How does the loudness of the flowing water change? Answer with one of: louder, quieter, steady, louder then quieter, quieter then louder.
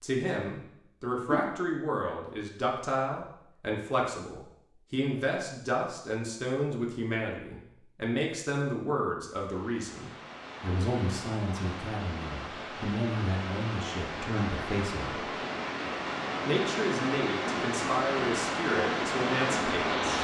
louder.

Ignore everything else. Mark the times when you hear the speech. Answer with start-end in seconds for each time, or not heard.
0.0-15.2, 16.4-20.2.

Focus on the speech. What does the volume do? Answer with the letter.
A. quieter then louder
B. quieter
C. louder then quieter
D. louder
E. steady
E.